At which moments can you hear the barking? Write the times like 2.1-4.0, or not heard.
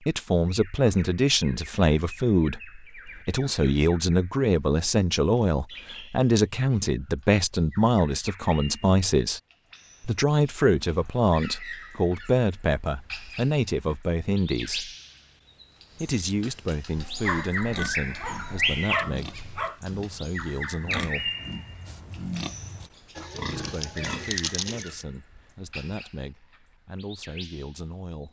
16.9-19.8.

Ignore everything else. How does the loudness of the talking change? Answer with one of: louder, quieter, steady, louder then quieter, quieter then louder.
quieter.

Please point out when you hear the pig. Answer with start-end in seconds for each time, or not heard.
17.6-25.1.